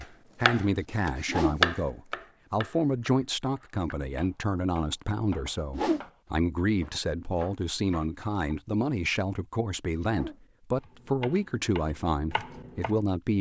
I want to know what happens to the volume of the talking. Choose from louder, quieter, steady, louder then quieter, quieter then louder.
steady.